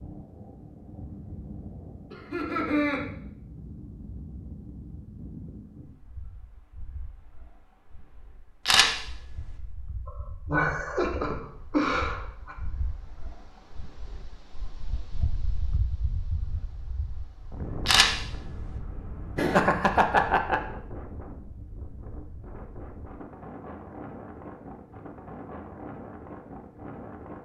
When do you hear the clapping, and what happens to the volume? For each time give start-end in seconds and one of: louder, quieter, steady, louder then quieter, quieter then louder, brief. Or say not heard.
not heard.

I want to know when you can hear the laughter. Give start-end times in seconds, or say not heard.
2.1-3.0, 10.1-12.6, 19.4-20.6.